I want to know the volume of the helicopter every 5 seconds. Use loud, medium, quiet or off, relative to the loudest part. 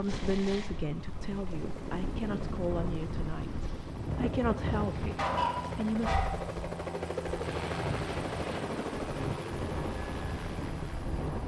medium, loud, medium.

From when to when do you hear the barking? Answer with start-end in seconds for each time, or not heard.
5.2-6.4.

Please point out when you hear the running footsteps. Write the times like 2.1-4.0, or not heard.
not heard.